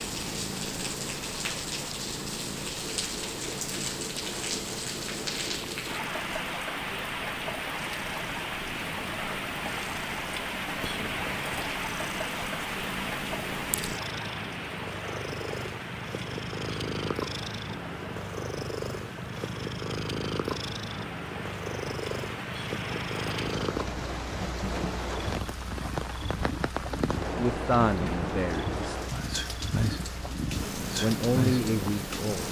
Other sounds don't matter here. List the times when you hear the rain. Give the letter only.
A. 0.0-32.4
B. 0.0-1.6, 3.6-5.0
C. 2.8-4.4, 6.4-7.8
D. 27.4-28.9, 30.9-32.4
A.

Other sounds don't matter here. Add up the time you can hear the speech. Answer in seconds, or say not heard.
3 s.